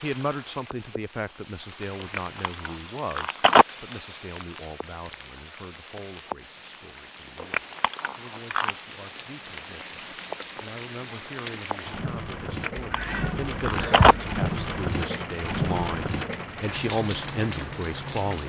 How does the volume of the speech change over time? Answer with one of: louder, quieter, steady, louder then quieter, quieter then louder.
quieter then louder.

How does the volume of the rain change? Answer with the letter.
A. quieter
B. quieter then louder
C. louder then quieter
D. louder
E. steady
D.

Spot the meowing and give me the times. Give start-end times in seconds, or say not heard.
12.8-14.4.